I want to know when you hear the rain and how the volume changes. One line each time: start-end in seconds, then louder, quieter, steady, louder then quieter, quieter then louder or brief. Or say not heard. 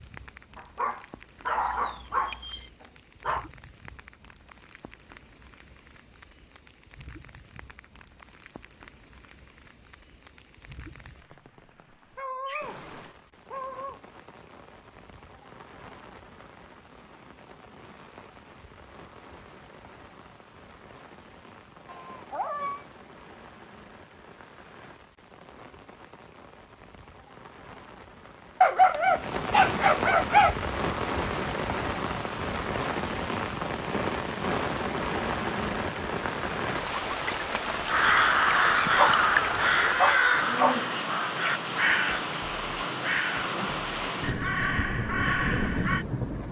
0.0-46.4 louder.